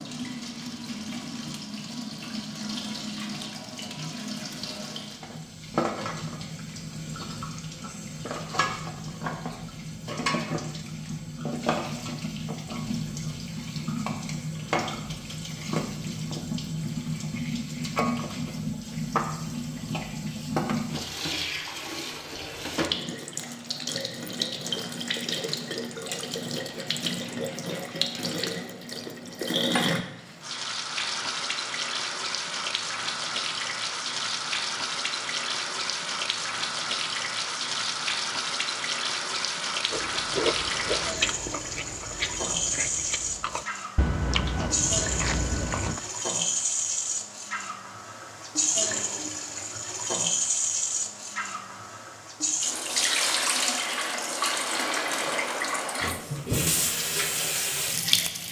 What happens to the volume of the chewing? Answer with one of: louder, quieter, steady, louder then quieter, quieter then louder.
quieter then louder.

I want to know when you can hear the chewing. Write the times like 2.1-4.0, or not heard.
39.9-46.0.